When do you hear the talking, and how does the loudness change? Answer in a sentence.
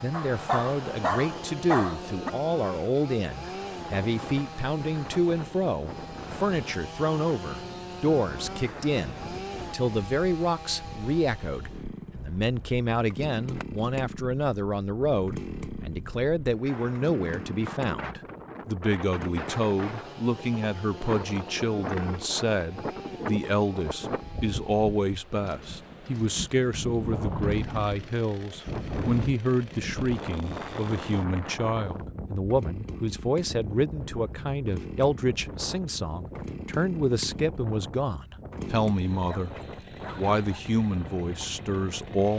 The talking can be heard from 0.0 to 39.5 s, at a steady volume; and briefly from 40.1 to 42.3 s.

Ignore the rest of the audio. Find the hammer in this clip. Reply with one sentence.
The hammer can't be heard in this clip.